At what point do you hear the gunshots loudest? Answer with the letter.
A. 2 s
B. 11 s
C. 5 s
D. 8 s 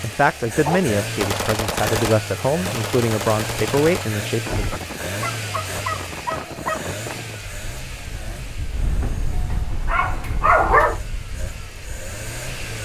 A.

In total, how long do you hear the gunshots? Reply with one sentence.
The gunshots can be heard for 4 seconds in total.